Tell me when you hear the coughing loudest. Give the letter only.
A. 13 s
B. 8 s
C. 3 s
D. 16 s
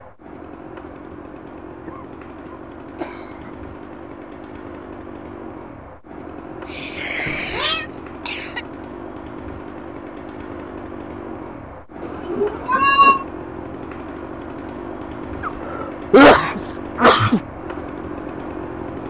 D.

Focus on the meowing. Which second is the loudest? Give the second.
13 s.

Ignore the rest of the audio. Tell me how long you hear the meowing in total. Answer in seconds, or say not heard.
2 s.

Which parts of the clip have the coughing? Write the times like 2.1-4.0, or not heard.
1.9-3.5, 6.7-8.7, 15.4-17.4.